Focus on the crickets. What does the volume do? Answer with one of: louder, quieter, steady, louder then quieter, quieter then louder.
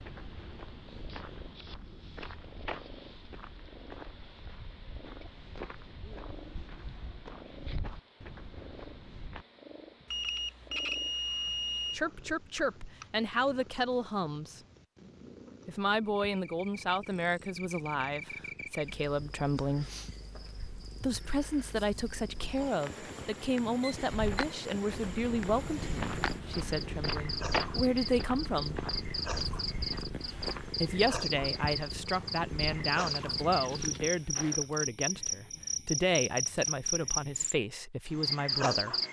louder.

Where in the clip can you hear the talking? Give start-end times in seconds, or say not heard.
11.9-14.6, 15.7-19.9, 21.0-28.8, 30.8-39.0.